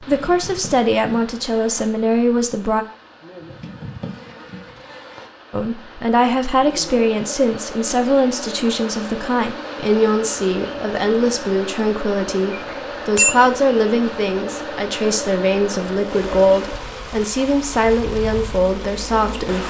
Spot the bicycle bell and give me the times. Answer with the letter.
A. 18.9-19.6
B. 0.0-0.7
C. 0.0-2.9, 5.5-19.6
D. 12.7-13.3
D.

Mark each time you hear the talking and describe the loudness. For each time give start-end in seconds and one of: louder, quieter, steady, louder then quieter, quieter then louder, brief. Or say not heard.
0.0-2.9 brief
5.5-19.6 steady.